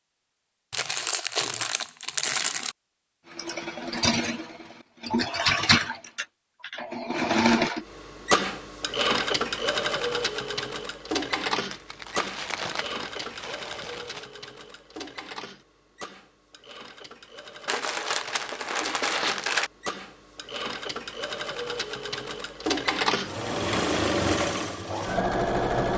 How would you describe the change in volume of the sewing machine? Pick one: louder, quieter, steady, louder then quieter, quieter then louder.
quieter then louder.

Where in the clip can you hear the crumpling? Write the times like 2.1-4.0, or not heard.
0.7-2.8, 11.7-14.2, 17.6-19.7.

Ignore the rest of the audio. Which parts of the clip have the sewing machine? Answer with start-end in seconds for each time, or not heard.
3.3-25.9.